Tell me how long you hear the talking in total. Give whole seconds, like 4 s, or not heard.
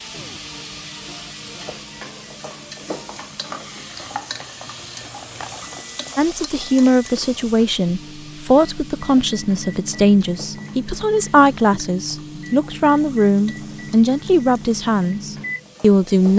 10 s.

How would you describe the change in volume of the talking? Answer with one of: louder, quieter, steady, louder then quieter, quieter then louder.
steady.